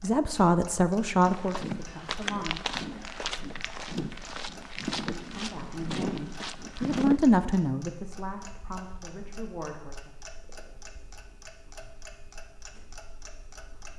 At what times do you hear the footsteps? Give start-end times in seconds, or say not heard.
1.2-7.2.